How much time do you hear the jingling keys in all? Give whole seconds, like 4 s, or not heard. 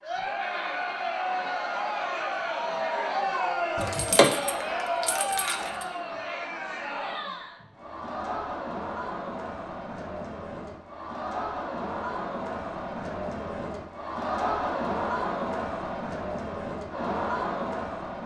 2 s.